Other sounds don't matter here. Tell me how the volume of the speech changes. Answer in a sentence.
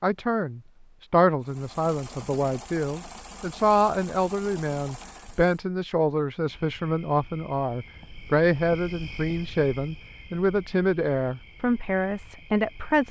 The loudness of the speech stays about the same.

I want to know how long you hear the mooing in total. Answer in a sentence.
The mooing can't be heard in this clip.